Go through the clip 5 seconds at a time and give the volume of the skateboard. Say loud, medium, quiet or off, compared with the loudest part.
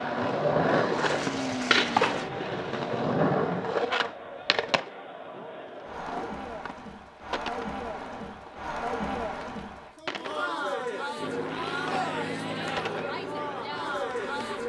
loud, quiet, quiet.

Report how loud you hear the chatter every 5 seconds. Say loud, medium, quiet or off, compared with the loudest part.
medium, loud, loud.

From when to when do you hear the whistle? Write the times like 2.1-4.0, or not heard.
not heard.